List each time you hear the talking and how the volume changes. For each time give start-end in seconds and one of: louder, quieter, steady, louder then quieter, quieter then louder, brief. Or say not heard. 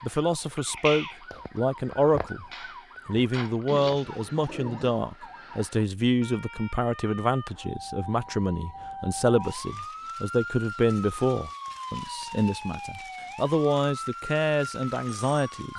0.0-2.5 brief
3.0-15.7 steady.